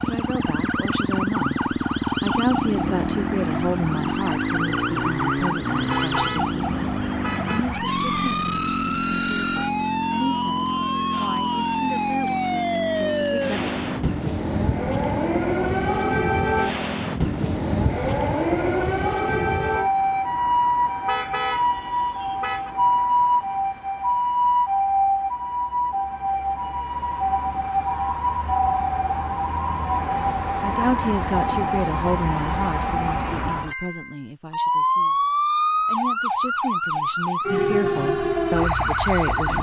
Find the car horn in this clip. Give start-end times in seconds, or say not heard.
5.8-7.7, 21.1-22.7.